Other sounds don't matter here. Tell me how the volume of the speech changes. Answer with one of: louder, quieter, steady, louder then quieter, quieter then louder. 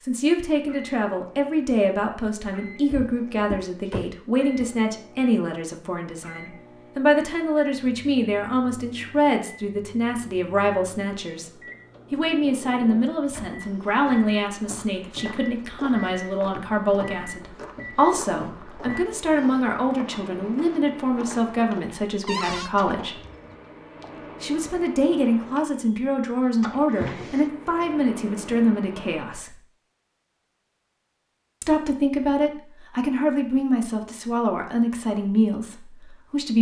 steady.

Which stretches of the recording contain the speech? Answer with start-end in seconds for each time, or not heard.
0.0-11.5, 12.1-23.2, 24.4-29.6, 31.6-36.5.